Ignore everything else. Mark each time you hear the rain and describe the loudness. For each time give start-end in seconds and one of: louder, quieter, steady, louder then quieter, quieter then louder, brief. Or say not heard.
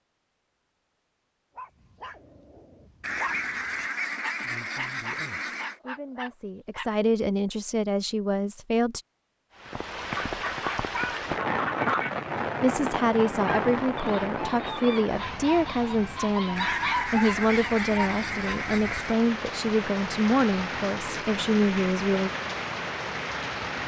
9.5-23.8 quieter then louder.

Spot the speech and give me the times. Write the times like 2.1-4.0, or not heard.
4.4-9.0, 12.6-22.3.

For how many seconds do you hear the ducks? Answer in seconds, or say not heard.
7 s.